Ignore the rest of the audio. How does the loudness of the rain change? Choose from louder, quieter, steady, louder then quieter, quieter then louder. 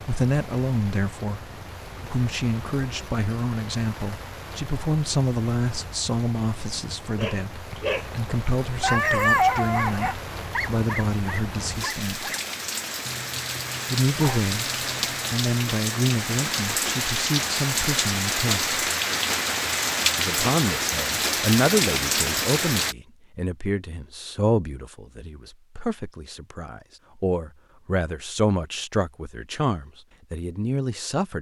louder.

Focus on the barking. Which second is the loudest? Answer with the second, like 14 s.
9 s.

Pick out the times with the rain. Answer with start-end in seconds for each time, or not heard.
0.0-22.9.